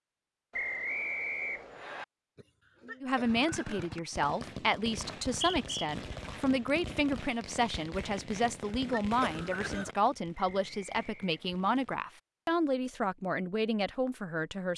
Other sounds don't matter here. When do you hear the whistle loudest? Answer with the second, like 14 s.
1 s.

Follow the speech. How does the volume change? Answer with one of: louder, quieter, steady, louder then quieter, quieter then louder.
steady.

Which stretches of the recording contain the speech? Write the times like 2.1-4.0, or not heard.
3.0-14.7.